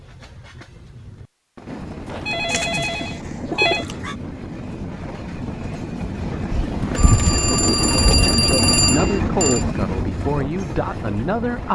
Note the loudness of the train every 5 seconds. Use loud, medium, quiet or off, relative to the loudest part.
medium, loud, medium.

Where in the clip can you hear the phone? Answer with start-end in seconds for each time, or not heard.
2.0-3.9, 7.0-9.7.